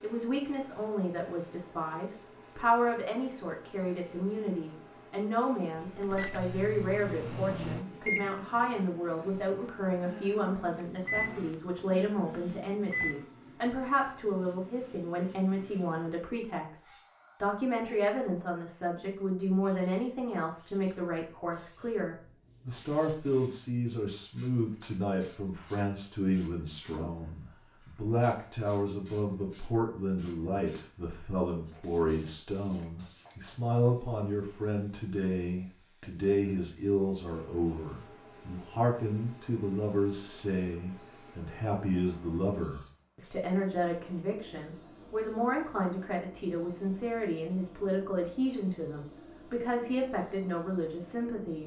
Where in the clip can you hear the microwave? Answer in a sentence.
You can hear the microwave from 5.8 to 13.3 s.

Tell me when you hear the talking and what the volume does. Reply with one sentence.
You can hear the talking from 0.0 to 51.6 s, at a steady volume.